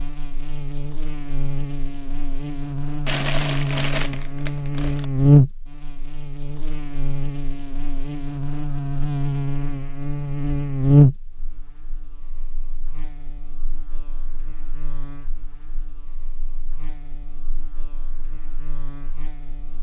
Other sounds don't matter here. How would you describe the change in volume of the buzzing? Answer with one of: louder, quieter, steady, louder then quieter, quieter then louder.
louder then quieter.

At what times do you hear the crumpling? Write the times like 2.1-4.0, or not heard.
3.0-5.0.